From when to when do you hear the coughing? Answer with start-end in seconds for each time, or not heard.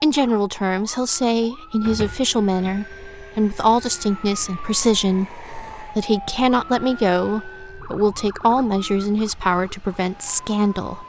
not heard.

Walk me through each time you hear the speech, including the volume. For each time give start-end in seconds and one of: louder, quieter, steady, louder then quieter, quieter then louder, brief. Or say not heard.
0.0-11.0 steady.